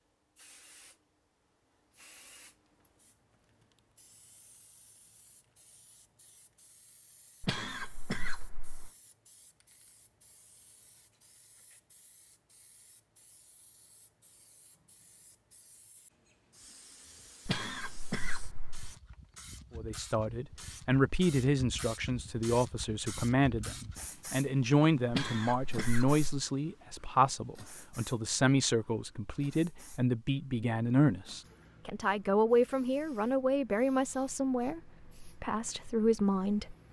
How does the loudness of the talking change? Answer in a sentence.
The volume of the talking stays about the same.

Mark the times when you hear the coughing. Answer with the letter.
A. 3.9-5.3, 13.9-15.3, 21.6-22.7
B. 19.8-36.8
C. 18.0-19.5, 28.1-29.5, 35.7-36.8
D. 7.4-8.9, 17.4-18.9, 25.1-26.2
D.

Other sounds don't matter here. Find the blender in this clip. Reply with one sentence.
The blender can't be heard in this clip.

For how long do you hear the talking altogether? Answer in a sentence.
You can hear the talking for 17 seconds altogether.